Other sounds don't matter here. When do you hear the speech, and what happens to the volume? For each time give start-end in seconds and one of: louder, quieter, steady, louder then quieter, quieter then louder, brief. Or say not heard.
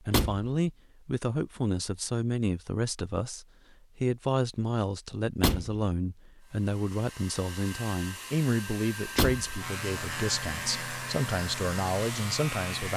0.0-12.9 steady.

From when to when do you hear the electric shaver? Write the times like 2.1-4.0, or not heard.
9.6-12.9.